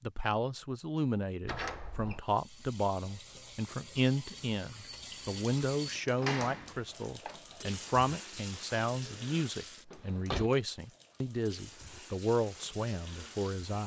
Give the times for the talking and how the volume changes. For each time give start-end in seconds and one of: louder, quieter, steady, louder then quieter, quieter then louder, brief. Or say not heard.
0.0-13.8 steady.